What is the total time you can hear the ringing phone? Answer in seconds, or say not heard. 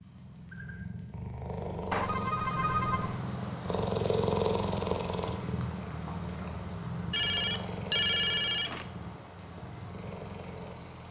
3 s.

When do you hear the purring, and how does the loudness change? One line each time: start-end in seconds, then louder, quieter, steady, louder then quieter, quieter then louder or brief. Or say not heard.
0.0-11.0 louder then quieter.